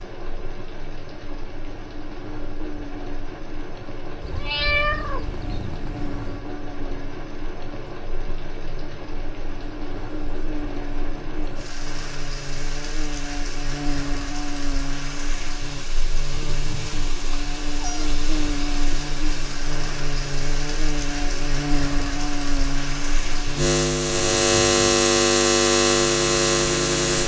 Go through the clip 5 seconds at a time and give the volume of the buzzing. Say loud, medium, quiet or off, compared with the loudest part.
quiet, quiet, quiet, quiet, medium, loud.